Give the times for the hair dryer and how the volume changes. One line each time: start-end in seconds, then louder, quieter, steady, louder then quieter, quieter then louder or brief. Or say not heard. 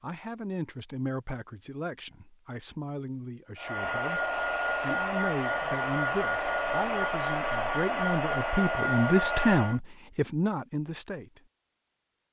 3.5-9.8 steady.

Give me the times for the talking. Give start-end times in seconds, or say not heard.
0.0-11.4.